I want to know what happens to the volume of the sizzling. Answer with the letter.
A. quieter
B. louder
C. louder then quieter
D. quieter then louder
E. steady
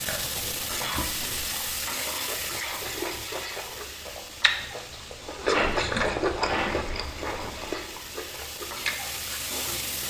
D.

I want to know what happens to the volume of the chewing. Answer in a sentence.
The volume of the chewing goes up, then down.